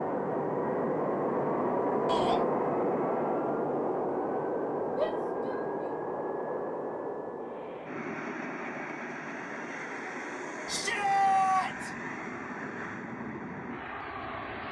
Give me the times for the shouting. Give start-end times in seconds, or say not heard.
2.0-2.5, 5.0-5.6, 10.7-11.9.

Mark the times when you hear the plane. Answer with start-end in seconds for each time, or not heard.
0.0-14.6.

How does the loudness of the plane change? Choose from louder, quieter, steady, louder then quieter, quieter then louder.
quieter.